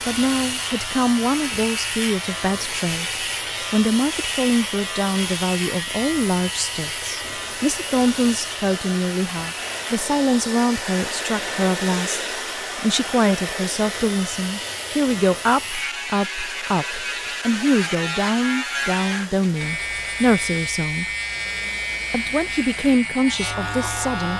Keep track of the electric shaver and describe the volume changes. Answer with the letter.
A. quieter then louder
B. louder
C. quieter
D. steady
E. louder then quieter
A.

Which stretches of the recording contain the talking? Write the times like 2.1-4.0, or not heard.
0.1-21.1, 22.1-24.3.